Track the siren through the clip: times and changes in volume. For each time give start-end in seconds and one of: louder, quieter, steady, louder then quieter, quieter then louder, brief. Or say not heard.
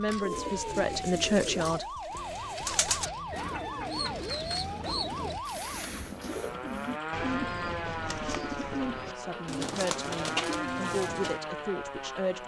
0.0-12.4 steady.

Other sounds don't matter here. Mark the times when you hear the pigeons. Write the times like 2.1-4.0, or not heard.
0.1-11.4.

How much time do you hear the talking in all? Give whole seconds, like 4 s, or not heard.
5 s.